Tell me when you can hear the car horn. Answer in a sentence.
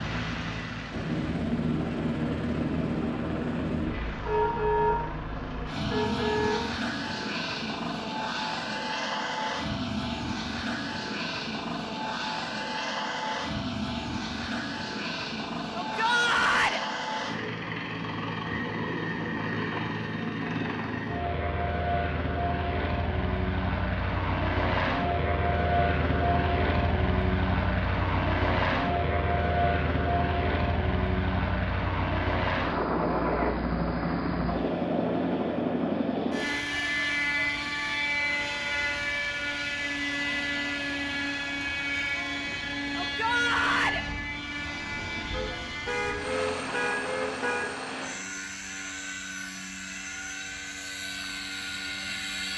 You can hear the car horn from 4.2 to 5.0 s, from 5.8 to 6.7 s and from 45.3 to 47.8 s.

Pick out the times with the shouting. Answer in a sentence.
The shouting can be heard from 15.8 to 16.8 s and from 43.0 to 44.0 s.